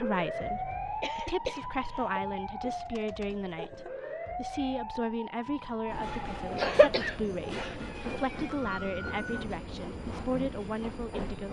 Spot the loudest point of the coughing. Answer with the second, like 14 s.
7 s.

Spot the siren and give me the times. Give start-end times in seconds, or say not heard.
0.0-9.2.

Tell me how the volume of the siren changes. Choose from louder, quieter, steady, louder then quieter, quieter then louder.
quieter.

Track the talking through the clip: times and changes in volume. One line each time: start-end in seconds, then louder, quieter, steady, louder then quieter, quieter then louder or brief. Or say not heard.
0.0-11.4 steady.